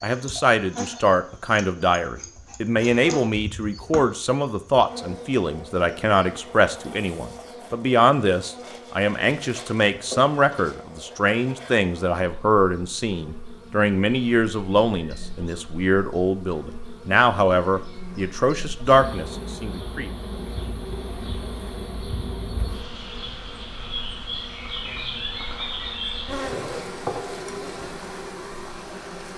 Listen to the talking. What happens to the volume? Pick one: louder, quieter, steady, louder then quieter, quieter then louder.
steady.